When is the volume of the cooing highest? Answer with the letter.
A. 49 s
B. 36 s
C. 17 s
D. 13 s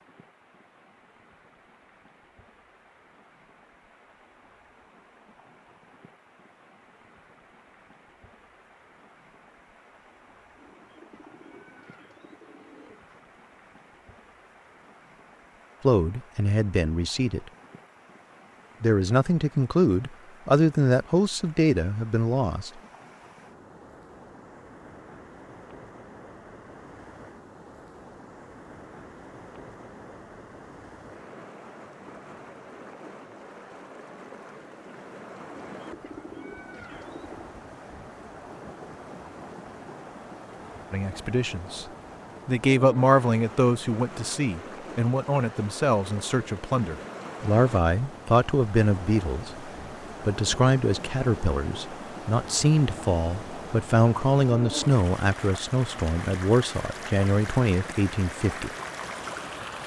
B.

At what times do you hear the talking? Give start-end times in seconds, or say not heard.
15.8-17.5, 18.8-22.8, 40.9-41.9, 42.5-58.7.